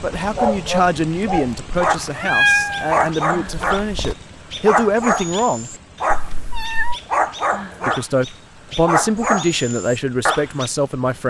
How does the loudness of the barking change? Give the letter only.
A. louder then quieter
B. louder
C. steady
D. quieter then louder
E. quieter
C.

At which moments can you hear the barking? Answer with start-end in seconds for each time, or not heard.
0.2-10.7.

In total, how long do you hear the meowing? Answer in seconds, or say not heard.
3 s.